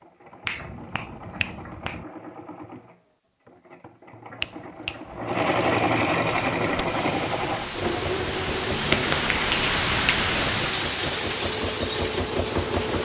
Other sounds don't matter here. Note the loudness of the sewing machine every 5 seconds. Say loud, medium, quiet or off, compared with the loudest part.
quiet, loud, loud.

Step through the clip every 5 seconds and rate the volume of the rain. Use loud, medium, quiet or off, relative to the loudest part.
off, loud, loud.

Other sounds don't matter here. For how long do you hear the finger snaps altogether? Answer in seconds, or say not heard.
4 s.